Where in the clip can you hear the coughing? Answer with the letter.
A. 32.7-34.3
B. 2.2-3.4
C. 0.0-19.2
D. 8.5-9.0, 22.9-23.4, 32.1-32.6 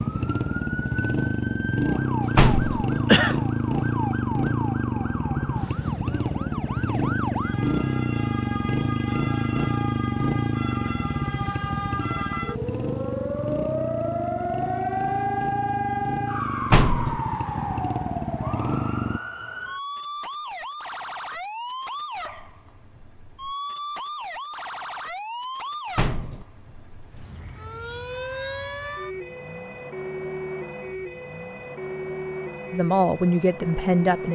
B.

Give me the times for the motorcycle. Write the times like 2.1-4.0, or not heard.
0.0-19.2.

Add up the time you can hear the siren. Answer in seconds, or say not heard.
34 s.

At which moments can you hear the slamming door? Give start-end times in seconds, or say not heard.
2.4-2.9, 16.7-17.2, 25.9-26.4.